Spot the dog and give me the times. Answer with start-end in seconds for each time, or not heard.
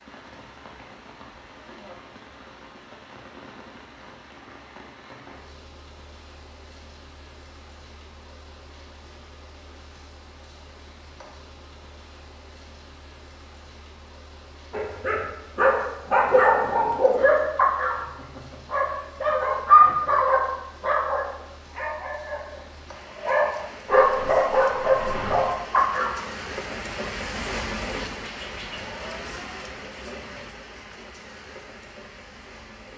14.7-26.1.